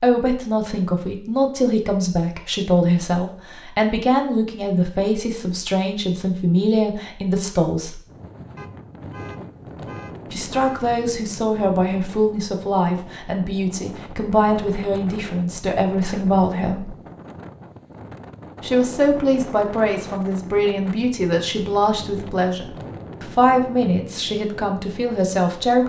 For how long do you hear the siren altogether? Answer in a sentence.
The siren can't be heard in this clip.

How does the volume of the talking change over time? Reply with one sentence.
The loudness of the talking stays about the same.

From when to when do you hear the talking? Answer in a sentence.
You can hear the talking from 0.0 to 8.0 s, from 10.3 to 16.9 s and from 18.6 to 25.8 s.